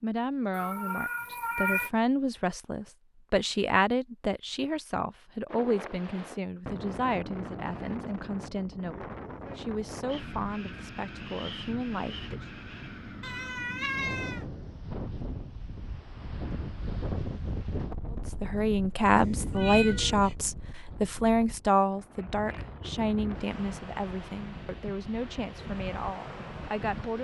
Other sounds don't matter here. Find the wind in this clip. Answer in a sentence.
The wind can be heard from 5.5 to 27.1 s.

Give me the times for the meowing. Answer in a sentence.
You can hear the meowing from 0.5 to 1.9 s, from 13.2 to 14.4 s and from 19.1 to 20.4 s.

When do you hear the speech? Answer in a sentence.
The speech can be heard from 0.0 to 12.4 s and from 18.1 to 27.1 s.